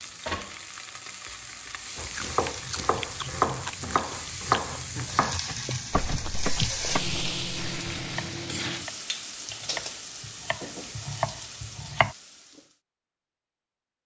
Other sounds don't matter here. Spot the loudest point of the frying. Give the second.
7 s.